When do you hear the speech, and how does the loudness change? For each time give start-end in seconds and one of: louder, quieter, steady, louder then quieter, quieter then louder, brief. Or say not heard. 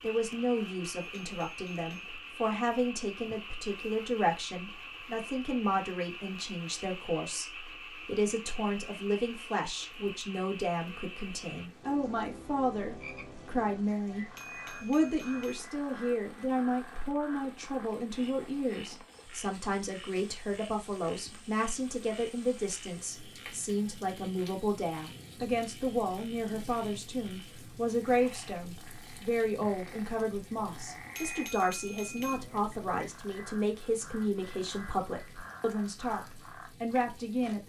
0.0-37.6 steady.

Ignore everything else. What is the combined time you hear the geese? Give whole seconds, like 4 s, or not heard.
not heard.